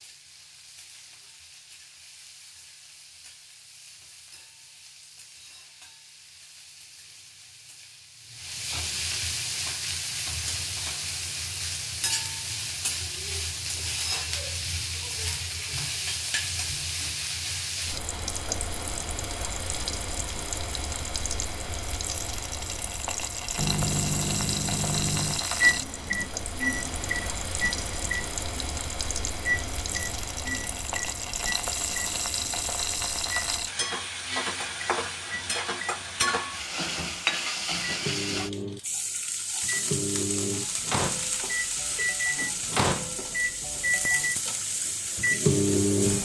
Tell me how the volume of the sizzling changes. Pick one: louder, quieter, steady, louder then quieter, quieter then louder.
louder.